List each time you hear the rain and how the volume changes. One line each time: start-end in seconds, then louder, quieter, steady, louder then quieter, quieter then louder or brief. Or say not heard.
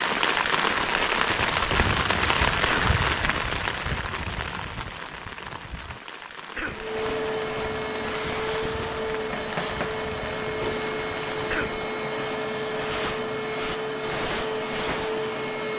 0.0-11.6 quieter.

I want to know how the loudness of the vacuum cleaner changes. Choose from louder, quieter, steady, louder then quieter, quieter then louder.
steady.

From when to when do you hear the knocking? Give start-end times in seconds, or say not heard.
9.3-10.1.